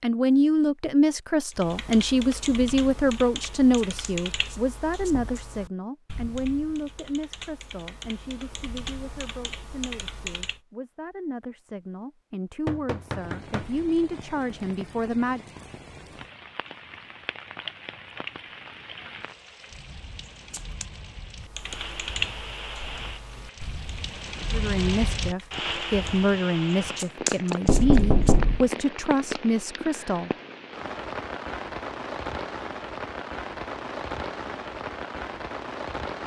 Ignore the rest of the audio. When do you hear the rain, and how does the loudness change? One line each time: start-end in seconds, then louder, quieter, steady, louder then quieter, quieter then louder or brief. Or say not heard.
12.9-36.2 louder.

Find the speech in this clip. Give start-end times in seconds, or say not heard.
0.0-15.4, 24.5-30.3.